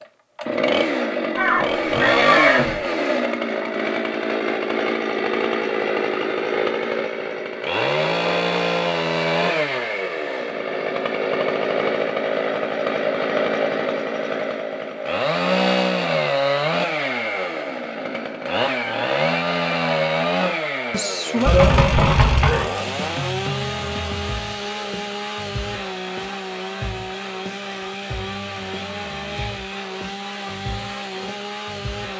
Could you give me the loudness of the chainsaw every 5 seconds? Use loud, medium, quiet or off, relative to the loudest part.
loud, loud, loud, loud, loud, medium, medium.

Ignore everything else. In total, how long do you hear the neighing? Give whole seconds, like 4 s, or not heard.
3 s.